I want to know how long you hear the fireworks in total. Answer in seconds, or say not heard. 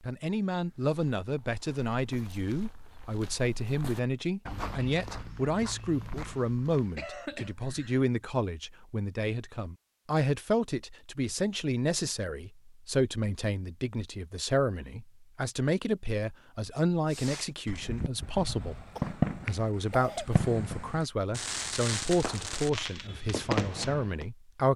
7 s.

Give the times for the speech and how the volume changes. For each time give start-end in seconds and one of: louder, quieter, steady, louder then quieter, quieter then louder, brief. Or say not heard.
0.0-24.7 steady.